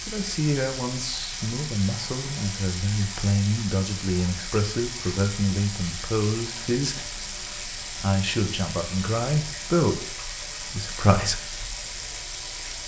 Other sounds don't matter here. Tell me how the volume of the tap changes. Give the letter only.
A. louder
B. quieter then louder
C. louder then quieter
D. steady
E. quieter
D.